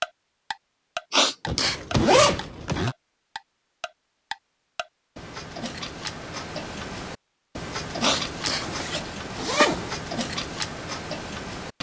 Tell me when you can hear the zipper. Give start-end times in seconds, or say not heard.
1.4-3.0, 8.6-9.9.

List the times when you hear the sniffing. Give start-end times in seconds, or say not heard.
1.1-1.8, 8.0-8.7.